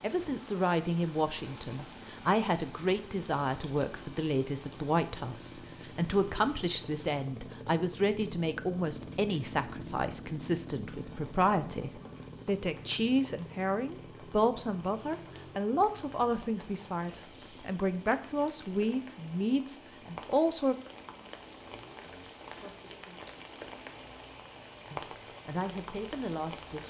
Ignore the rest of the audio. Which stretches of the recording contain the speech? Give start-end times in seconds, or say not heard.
0.0-20.8, 22.6-23.2, 24.9-26.8.